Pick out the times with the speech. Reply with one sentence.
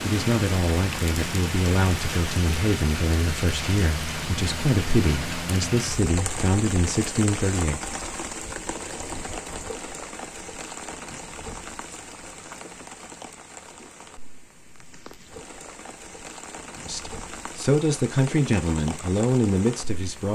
You can hear the speech from 0.0 to 7.8 s and from 16.9 to 20.2 s.